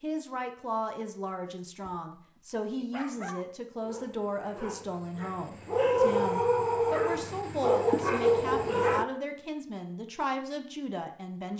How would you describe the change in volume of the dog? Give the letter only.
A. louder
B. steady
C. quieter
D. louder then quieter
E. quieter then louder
A.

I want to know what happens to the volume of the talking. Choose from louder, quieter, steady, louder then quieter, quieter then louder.
steady.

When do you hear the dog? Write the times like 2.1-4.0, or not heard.
1.4-9.1.